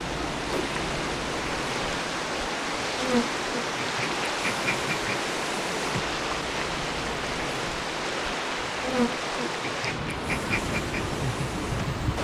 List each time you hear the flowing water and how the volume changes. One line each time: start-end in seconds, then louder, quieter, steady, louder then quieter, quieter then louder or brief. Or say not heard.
0.0-12.1 steady.